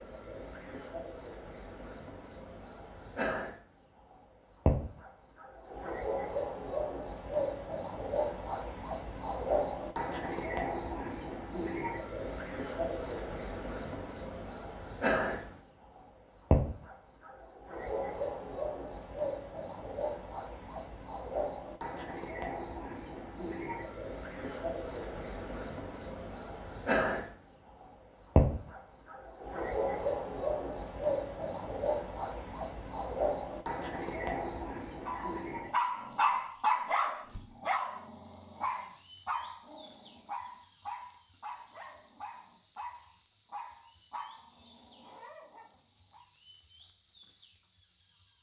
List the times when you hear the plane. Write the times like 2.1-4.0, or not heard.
not heard.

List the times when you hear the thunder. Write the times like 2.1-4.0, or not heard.
not heard.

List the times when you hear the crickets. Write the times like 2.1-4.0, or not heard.
0.0-48.3.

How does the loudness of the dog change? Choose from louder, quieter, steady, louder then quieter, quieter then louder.
quieter.